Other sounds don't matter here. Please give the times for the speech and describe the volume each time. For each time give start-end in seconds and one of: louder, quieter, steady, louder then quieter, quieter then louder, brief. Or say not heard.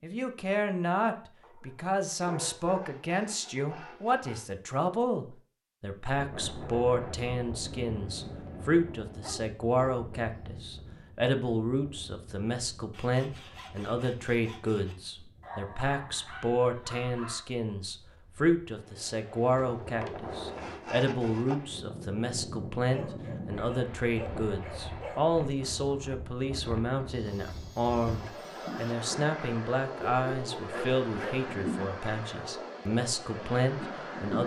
0.0-34.4 steady.